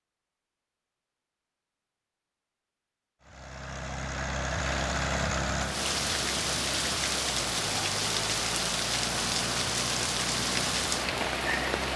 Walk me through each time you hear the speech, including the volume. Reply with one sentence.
You can't hear the speech here.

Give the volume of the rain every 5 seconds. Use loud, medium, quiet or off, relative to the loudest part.
off, loud, loud.